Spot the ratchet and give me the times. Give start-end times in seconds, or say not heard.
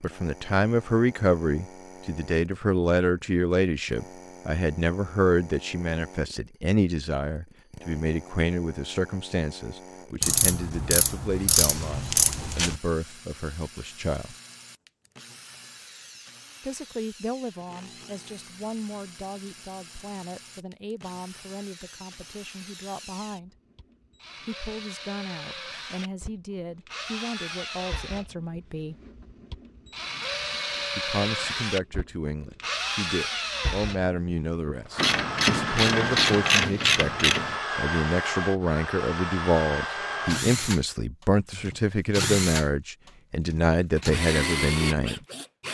10.2-12.8, 35.0-37.6.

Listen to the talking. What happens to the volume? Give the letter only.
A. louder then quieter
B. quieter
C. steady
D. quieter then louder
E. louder
D.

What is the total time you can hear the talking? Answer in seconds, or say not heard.
40 s.